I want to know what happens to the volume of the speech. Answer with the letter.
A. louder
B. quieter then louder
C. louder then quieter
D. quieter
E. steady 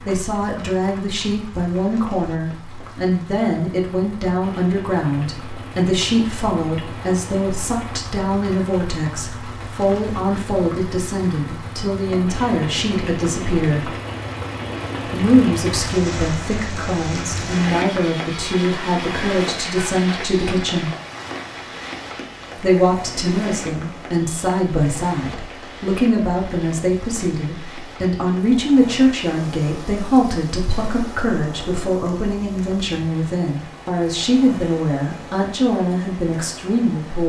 E.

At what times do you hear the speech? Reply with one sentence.
You can hear the speech from 0.0 to 13.9 s, from 15.1 to 20.9 s and from 22.6 to 37.2 s.